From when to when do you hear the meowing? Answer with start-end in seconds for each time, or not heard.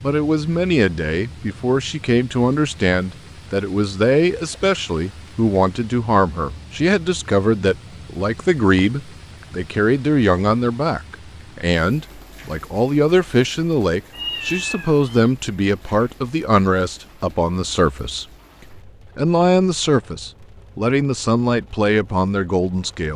14.1-15.3.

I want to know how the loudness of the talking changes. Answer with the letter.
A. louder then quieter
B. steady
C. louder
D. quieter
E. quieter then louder
B.